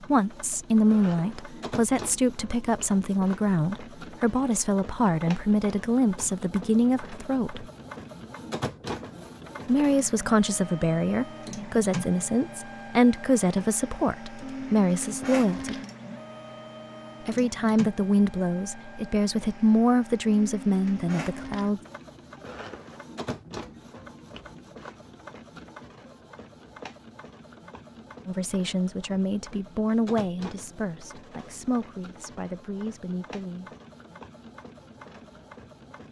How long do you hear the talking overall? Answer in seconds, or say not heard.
24 s.